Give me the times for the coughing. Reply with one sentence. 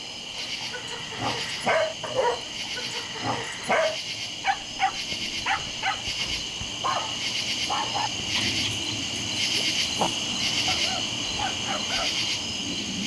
The coughing can't be heard in this clip.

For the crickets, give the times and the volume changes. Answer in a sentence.
The crickets can be heard from 0.0 to 13.0 s, getting louder.